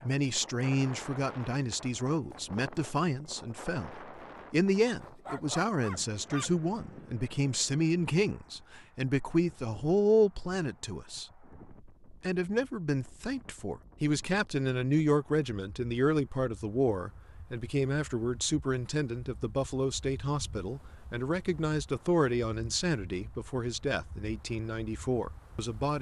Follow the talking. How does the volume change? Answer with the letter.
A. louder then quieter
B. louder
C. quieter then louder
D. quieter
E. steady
E.